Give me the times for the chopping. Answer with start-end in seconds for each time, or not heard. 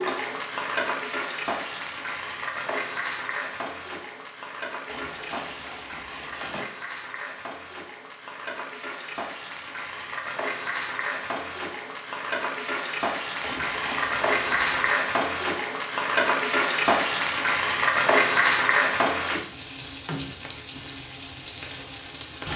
not heard.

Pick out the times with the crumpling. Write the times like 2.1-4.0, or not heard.
4.8-6.7, 13.4-15.0.